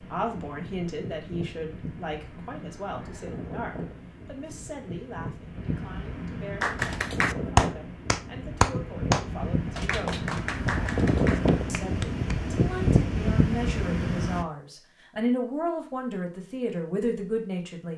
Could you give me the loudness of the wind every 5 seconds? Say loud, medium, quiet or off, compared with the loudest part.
quiet, medium, loud, off.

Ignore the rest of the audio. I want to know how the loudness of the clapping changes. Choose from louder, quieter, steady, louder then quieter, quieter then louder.
quieter.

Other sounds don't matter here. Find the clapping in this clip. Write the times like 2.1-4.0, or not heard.
6.6-12.3.